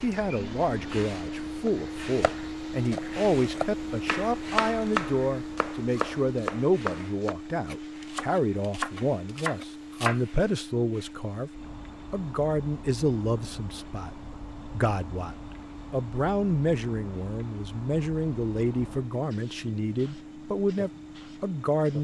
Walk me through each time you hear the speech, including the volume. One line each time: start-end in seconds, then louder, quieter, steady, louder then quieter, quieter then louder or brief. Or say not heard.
0.0-21.9 steady.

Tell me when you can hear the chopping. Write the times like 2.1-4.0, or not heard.
1.6-10.2.